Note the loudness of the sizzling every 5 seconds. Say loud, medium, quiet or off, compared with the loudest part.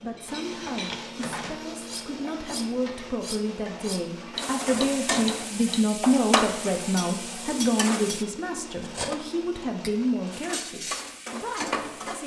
medium, loud, loud.